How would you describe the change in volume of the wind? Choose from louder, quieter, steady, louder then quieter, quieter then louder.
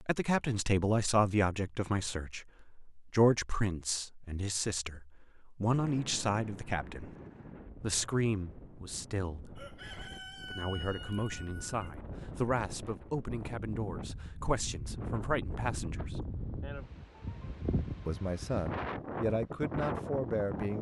louder.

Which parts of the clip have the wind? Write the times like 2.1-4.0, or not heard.
5.7-20.7.